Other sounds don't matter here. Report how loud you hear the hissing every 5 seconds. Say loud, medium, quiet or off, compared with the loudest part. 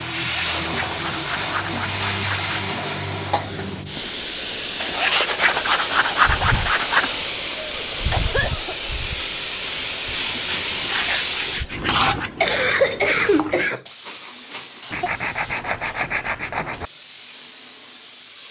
loud, loud, loud, medium.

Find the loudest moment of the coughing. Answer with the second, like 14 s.
13 s.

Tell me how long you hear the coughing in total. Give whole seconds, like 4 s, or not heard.
5 s.